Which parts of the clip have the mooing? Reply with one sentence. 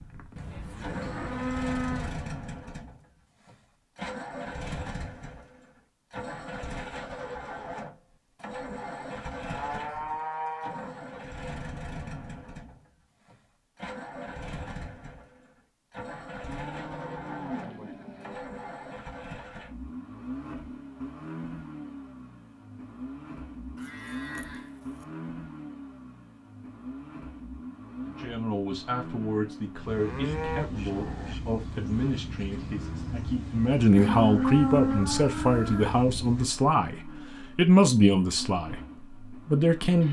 The mooing can be heard from 0.3 to 2.2 s, from 9.4 to 10.9 s, from 16.4 to 18.4 s, from 23.8 to 25.1 s, from 29.9 to 31.4 s and from 34.0 to 36.0 s.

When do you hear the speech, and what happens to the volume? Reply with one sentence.
The speech can be heard from 28.1 to 38.8 s, getting louder; and briefly from 39.5 to 40.0 s.